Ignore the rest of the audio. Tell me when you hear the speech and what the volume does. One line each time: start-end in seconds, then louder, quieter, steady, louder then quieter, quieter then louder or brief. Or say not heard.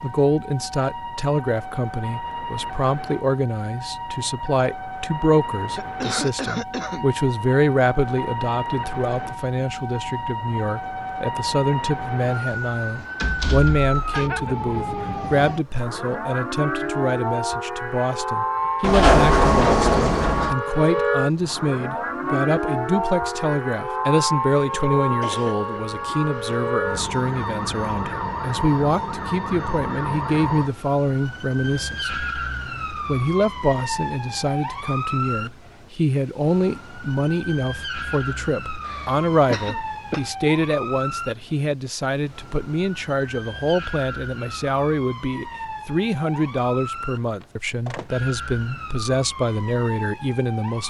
0.0-32.1 steady
33.0-50.8 steady.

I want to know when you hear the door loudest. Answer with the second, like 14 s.
19 s.